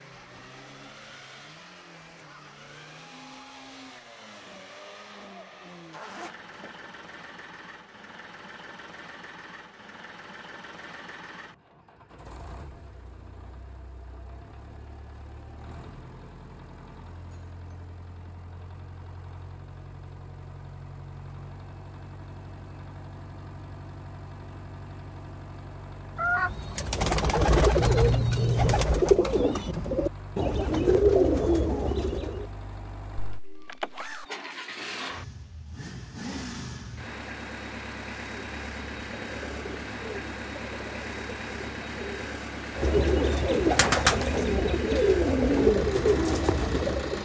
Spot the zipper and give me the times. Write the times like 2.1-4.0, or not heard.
5.9-6.7, 27.8-28.9, 33.4-34.2.